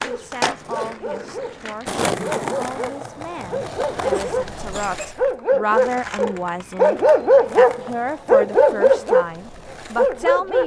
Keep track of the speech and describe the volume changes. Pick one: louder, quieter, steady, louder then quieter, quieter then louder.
louder.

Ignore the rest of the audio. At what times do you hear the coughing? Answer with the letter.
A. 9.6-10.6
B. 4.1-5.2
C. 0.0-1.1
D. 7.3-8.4
B.